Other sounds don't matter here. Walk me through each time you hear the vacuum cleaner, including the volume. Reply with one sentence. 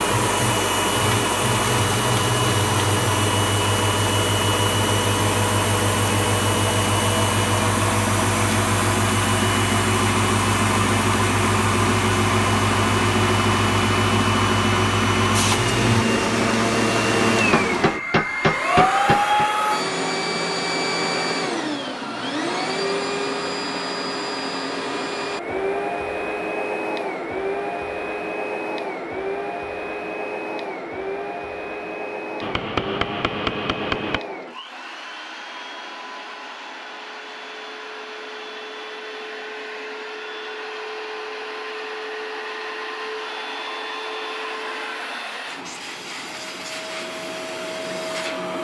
You can hear the vacuum cleaner from 0.0 to 48.6 s, getting quieter.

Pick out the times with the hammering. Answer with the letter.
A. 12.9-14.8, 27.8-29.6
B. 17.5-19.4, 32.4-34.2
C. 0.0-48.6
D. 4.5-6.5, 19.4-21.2
B.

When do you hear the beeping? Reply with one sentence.
You can't hear the beeping here.